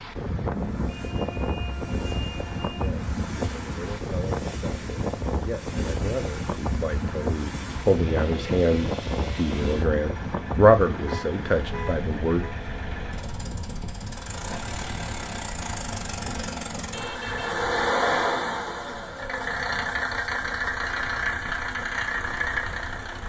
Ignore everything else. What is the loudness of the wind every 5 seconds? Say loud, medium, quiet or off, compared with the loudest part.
loud, loud, medium, quiet, quiet.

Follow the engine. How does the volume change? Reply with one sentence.
The loudness of the engine goes up.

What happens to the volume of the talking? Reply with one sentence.
The volume of the talking goes up.